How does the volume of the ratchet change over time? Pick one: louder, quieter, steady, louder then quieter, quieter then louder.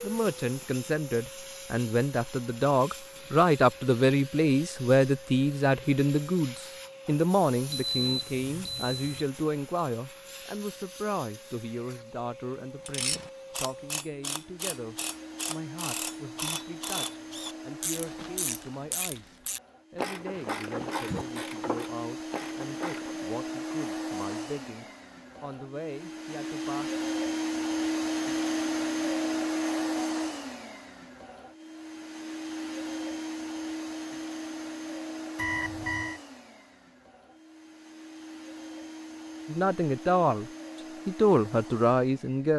steady.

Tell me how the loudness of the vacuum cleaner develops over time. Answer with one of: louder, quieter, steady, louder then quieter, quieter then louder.
louder then quieter.